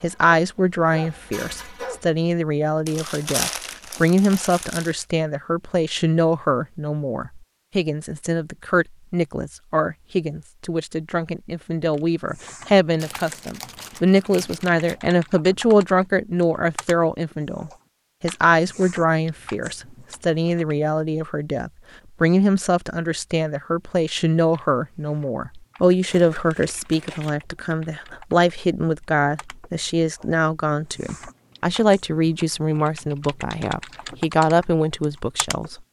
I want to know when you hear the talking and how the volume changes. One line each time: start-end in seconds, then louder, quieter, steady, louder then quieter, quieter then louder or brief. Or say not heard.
0.0-35.8 steady.